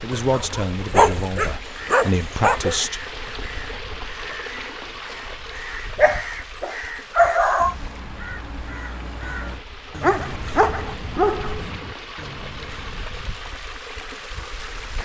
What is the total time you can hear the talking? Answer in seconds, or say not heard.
3 s.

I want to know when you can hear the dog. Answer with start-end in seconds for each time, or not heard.
0.1-2.8, 6.0-7.8, 10.0-11.8.